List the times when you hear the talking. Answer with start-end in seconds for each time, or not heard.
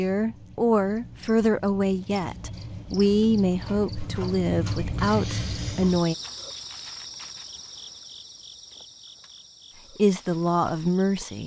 0.0-6.2, 9.9-11.4.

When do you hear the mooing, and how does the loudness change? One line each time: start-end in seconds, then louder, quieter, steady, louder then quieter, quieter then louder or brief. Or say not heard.
not heard.